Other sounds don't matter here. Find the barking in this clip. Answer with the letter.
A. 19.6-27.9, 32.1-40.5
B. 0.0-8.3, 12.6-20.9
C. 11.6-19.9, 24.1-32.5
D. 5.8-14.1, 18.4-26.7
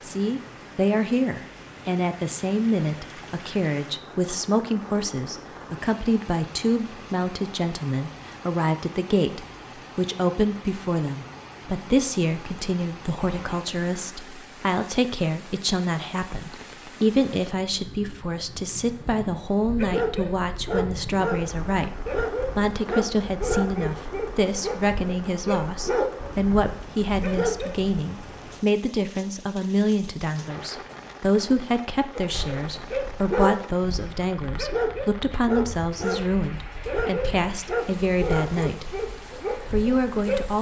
A.